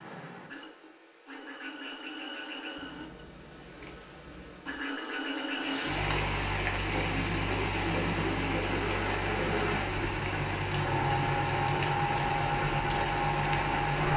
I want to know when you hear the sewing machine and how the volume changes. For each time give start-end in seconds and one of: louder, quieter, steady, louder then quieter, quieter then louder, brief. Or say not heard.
0.0-14.1 louder.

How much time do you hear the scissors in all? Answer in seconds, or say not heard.
2 s.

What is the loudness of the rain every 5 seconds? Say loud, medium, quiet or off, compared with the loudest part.
off, loud, loud.